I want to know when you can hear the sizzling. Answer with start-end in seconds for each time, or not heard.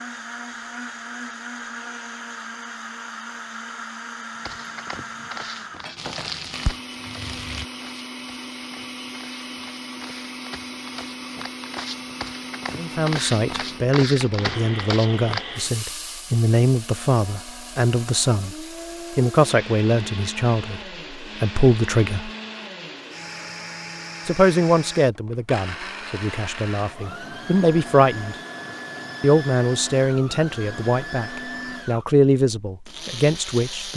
6.0-7.7.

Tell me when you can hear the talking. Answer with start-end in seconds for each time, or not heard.
12.8-22.3, 24.2-28.4, 29.2-33.9.